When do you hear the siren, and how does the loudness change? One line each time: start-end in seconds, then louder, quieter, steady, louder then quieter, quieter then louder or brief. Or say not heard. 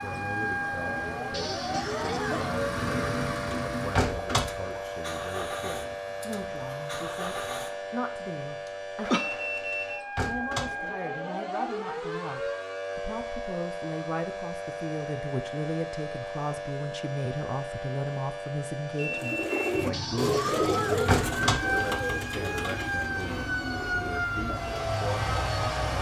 0.0-25.9 steady.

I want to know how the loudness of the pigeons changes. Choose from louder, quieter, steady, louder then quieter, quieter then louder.
quieter.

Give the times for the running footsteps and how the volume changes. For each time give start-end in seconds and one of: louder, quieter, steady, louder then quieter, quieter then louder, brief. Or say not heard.
not heard.